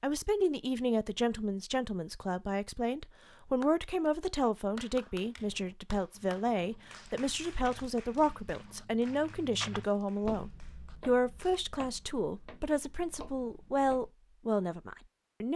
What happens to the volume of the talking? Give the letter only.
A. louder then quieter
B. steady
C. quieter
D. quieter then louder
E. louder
B.